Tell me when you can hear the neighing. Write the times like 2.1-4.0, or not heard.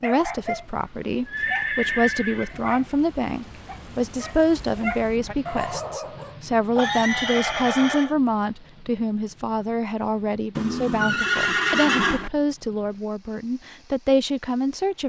1.2-2.5, 6.8-8.2, 10.6-12.3.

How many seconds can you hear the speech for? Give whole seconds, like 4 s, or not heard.
15 s.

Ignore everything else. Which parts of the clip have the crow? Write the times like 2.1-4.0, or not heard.
not heard.